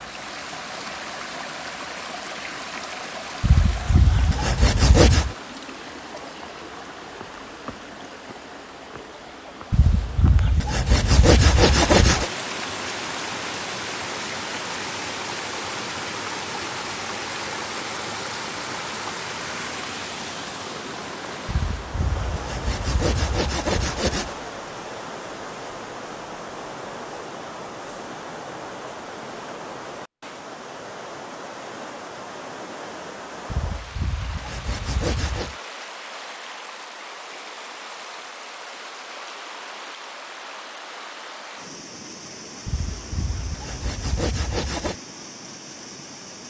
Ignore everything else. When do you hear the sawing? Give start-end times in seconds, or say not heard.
3.4-5.3, 9.7-12.3, 21.4-24.4, 33.5-35.6, 42.6-45.0.